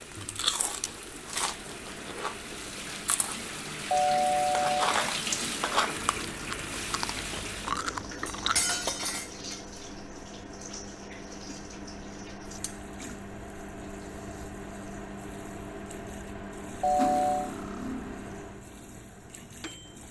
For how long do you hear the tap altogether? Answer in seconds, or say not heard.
20 s.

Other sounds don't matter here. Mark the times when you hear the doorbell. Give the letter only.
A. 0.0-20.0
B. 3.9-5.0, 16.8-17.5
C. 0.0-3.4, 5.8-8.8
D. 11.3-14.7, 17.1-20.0
B.